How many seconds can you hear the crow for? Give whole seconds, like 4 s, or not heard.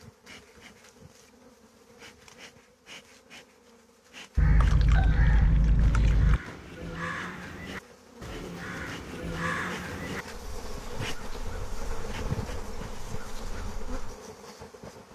10 s.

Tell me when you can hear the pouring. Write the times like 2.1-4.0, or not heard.
4.3-6.4.